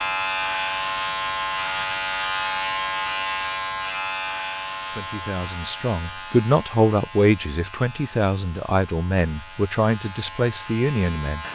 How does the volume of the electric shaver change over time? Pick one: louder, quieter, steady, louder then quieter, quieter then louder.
quieter.